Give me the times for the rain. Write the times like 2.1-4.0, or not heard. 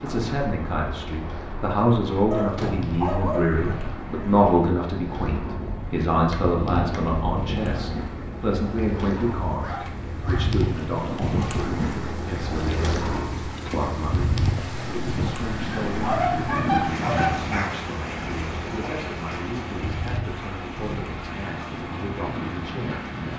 0.1-23.3.